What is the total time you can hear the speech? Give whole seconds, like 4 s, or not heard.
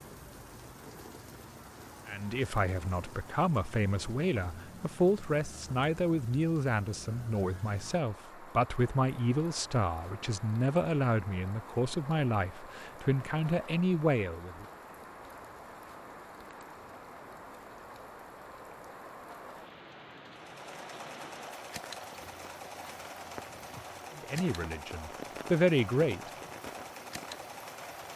15 s.